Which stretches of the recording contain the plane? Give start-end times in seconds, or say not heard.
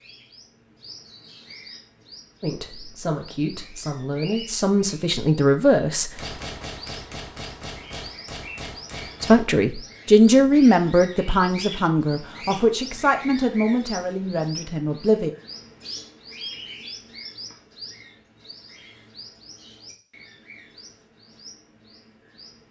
not heard.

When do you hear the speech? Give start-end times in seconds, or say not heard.
2.4-6.1, 9.2-15.3.